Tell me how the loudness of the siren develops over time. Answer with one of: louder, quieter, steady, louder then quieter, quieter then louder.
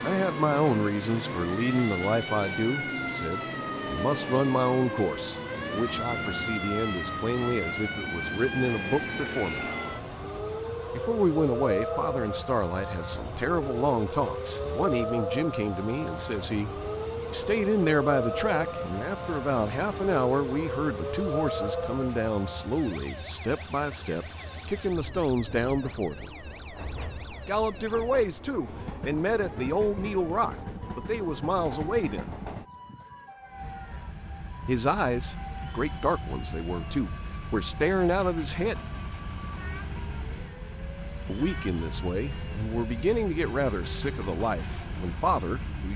quieter.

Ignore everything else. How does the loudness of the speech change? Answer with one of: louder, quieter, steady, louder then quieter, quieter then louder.
steady.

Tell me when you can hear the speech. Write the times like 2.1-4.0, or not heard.
0.0-9.7, 10.9-26.3, 27.4-32.3, 34.6-38.9, 41.2-45.9.